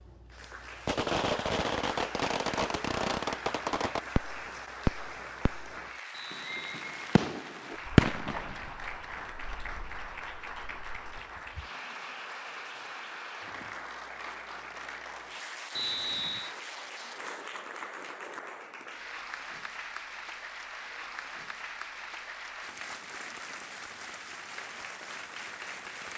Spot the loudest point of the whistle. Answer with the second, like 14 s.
16 s.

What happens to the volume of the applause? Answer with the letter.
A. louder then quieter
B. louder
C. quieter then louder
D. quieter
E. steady
E.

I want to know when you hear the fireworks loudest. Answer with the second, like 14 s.
8 s.